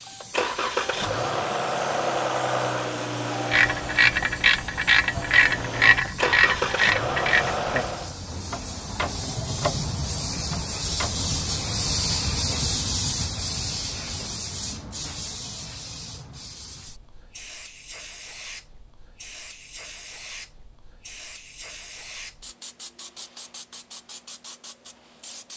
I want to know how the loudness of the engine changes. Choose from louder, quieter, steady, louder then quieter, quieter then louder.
quieter then louder.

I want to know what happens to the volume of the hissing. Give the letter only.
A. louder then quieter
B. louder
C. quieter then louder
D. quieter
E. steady
A.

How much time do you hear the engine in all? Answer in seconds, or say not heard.
8 s.